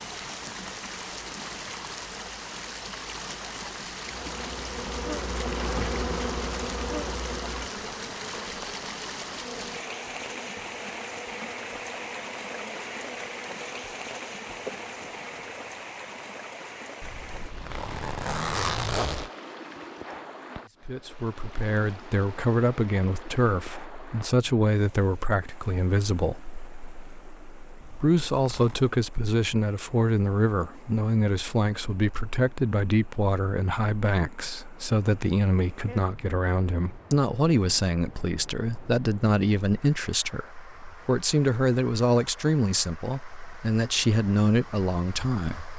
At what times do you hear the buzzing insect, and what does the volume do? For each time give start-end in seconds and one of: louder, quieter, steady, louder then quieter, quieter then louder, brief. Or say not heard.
4.0-15.8 quieter.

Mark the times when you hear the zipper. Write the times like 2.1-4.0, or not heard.
17.0-19.3, 27.8-28.9.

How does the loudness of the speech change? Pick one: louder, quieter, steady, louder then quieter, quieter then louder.
steady.